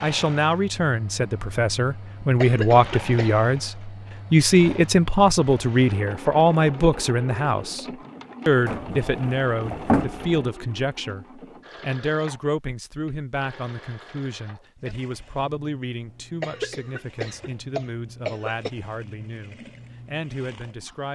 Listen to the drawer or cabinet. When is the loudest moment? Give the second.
10 s.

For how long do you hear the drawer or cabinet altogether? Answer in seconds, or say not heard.
2 s.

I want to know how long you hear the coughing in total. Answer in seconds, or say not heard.
3 s.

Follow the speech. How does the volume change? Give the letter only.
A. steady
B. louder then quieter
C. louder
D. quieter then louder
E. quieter
E.